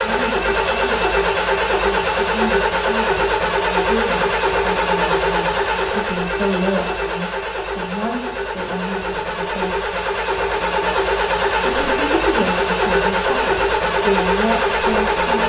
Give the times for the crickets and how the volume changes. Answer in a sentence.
You can't hear the crickets here.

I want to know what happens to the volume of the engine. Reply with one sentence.
The loudness of the engine goes down, then up.